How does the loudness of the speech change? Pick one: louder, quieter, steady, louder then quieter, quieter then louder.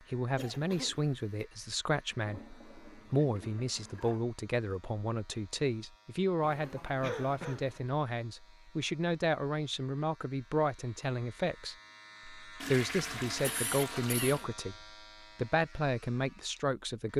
steady.